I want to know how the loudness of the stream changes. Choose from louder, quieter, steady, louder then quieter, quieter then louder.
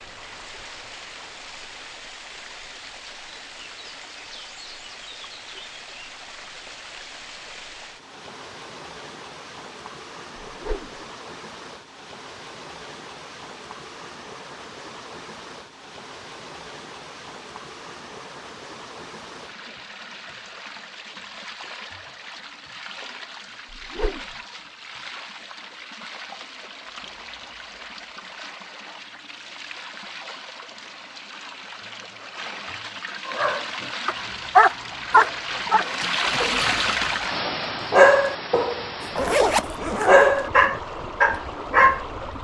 louder.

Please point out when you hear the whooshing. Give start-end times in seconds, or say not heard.
10.4-11.0, 23.7-24.4.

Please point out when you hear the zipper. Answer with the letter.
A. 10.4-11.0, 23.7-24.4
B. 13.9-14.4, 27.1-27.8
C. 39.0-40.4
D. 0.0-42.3
C.